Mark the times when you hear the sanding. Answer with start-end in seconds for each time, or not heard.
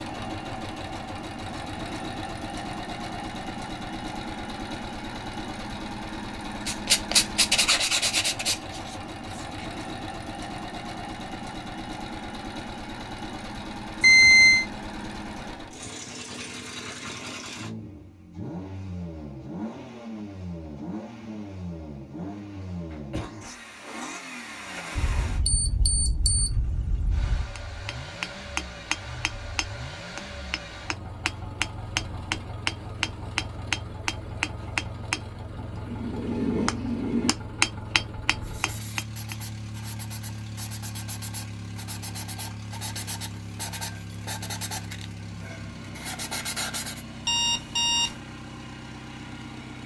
6.7-9.7, 38.4-47.0.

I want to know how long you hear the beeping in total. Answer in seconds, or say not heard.
4 s.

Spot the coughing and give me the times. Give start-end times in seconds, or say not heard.
22.9-23.6.